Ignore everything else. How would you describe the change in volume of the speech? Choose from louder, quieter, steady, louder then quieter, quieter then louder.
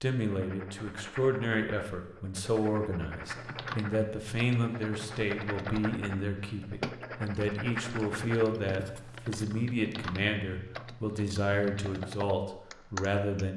steady.